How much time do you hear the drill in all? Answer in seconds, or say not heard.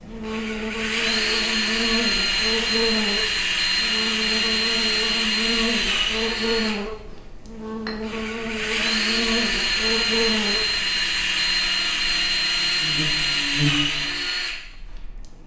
15 s.